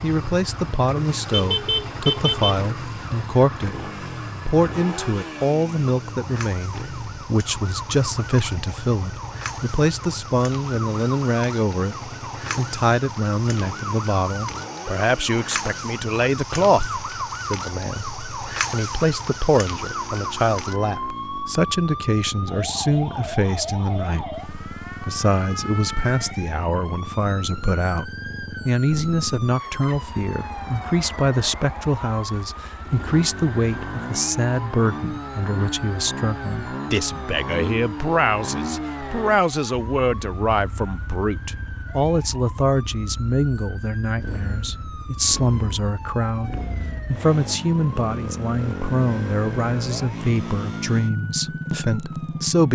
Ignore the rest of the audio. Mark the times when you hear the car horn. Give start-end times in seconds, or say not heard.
1.3-2.6.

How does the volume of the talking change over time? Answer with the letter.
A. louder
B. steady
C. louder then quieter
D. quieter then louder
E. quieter
B.